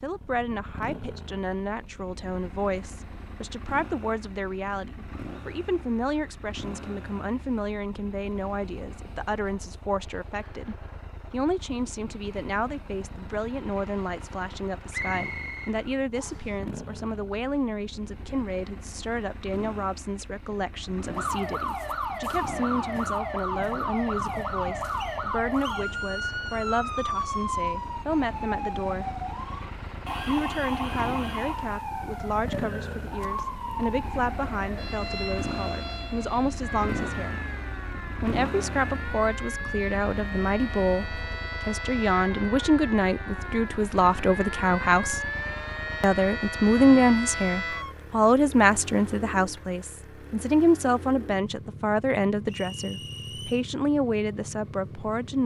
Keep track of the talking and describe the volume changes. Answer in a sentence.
The loudness of the talking goes up.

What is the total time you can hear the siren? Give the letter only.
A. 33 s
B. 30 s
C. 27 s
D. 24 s
C.